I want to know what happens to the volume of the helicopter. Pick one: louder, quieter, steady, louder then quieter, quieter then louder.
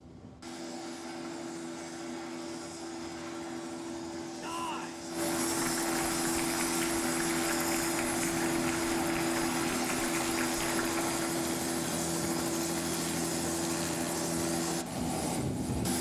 louder.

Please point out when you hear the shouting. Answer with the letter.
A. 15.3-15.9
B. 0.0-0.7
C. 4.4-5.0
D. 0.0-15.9
C.